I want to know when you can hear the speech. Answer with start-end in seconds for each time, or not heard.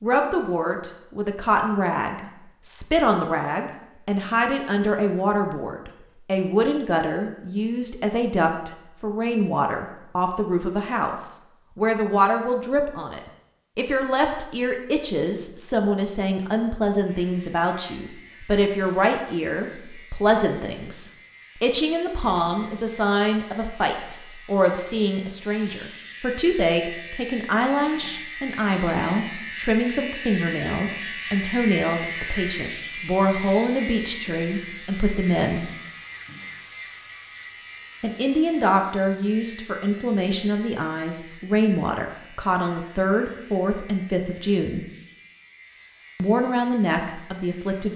0.0-35.7, 38.0-44.9, 46.1-47.9.